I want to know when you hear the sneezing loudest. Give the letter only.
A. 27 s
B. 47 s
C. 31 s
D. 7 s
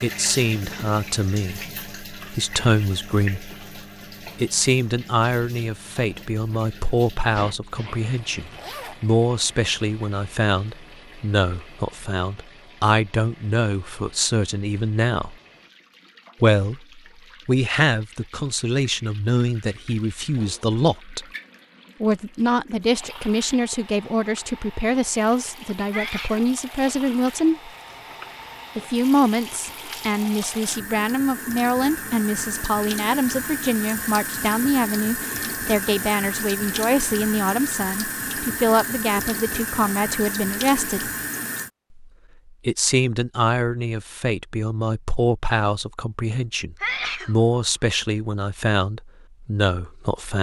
B.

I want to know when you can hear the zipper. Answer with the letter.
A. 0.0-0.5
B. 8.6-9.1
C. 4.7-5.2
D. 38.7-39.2
B.